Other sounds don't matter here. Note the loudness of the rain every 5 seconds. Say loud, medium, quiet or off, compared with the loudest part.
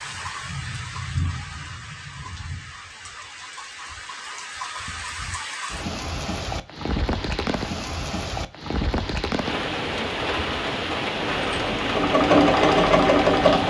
medium, loud, loud.